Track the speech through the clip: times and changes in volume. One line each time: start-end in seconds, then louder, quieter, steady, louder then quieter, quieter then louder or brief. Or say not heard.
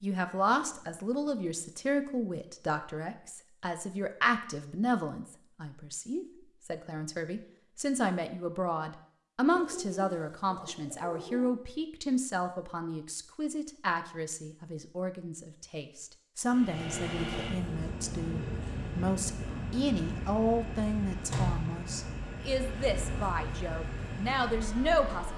0.0-25.3 steady.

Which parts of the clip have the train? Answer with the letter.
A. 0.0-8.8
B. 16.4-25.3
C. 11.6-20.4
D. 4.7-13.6
B.